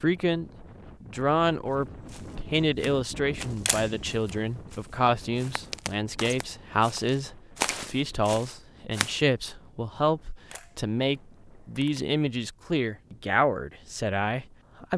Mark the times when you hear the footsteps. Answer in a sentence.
The footsteps can be heard from 2.0 to 9.2 s.